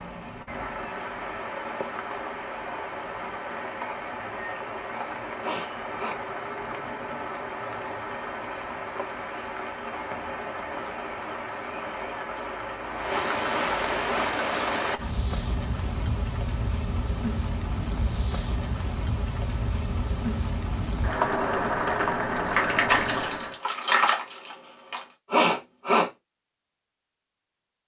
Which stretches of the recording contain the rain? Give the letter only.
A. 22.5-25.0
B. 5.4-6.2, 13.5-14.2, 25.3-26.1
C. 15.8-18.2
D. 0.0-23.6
D.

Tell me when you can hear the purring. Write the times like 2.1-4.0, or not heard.
not heard.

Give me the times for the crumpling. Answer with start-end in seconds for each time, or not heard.
22.5-25.0.